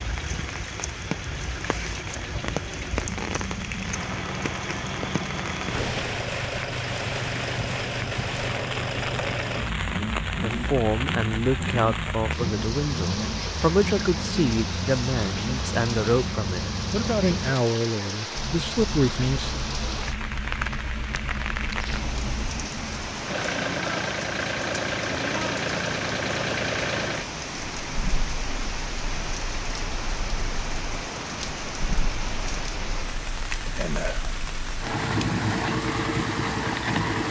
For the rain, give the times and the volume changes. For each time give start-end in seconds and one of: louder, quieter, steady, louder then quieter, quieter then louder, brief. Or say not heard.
0.0-37.2 steady.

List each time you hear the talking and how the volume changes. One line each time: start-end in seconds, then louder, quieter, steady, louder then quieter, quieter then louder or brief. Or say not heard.
10.4-19.6 steady.